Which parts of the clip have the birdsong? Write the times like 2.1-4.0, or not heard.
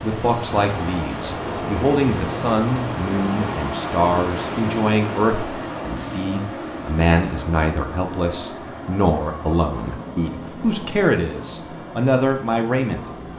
not heard.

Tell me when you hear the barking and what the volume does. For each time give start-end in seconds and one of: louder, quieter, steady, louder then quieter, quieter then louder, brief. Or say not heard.
not heard.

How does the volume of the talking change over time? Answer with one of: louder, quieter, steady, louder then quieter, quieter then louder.
steady.